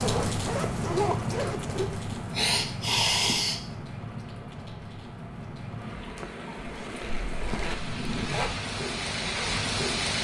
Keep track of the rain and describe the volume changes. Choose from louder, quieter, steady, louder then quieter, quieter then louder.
quieter then louder.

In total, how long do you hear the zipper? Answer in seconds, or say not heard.
4 s.